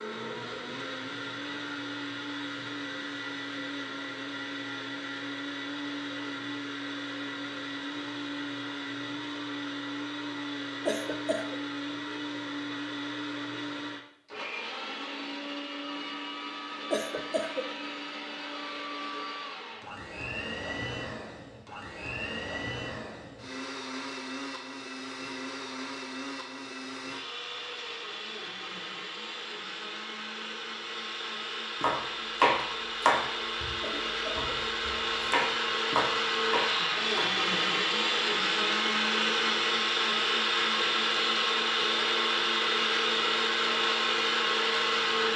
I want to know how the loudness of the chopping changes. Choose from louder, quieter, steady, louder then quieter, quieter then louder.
quieter then louder.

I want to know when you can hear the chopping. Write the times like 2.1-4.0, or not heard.
31.8-37.3.